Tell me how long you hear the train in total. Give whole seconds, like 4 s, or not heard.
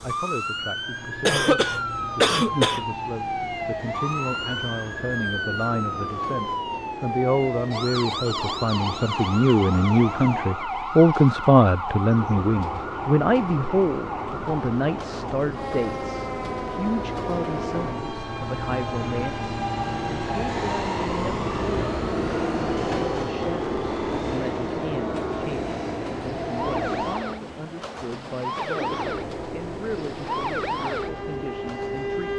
32 s.